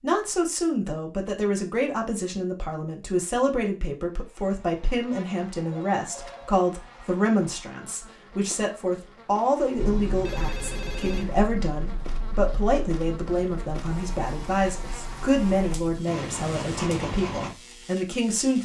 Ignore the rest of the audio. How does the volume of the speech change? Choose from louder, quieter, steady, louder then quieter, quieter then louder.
steady.